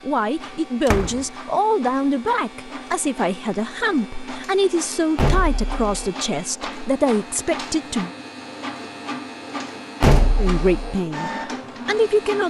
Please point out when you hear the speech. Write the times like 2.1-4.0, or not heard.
0.0-8.1, 10.3-12.4.